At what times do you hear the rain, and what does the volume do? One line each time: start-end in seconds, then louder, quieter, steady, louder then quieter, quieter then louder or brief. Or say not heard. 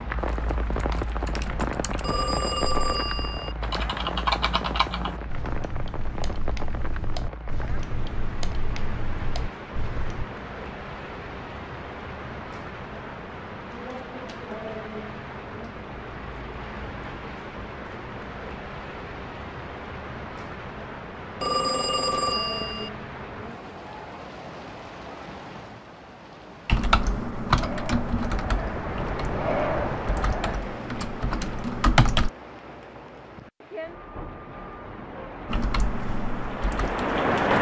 0.0-37.5 steady.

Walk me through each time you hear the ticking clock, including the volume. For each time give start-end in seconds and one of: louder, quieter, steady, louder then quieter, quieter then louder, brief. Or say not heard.
not heard.